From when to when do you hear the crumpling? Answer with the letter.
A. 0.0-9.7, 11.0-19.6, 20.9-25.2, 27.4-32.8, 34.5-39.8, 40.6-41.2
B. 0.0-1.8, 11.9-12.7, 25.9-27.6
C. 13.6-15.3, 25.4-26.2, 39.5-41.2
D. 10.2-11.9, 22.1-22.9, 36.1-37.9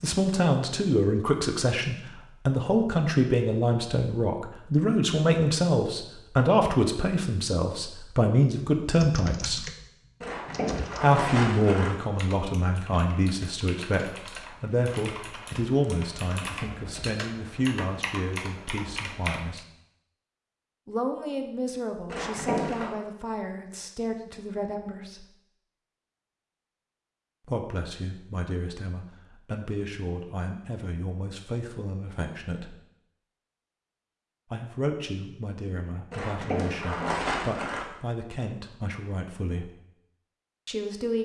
D.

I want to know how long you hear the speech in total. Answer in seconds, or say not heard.
34 s.